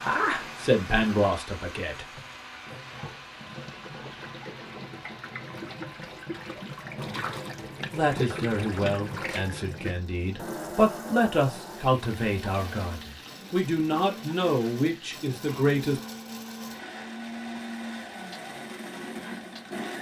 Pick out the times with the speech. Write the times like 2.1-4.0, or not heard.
0.0-2.2, 7.9-16.0.